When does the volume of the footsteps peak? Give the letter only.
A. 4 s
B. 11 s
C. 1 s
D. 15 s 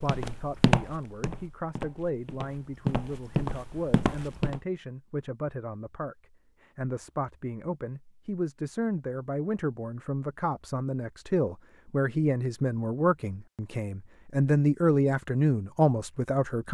C.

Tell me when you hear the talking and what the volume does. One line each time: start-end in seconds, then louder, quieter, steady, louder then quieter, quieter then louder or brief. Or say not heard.
0.0-16.7 louder.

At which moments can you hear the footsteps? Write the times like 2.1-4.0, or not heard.
0.0-4.6.